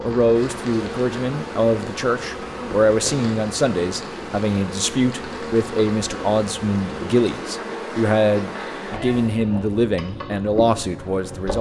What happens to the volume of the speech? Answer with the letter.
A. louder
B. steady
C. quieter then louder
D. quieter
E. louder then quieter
B.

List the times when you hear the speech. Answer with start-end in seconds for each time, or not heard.
0.0-11.5.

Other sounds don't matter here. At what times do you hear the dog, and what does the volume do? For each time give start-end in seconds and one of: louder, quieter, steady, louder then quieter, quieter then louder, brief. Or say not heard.
not heard.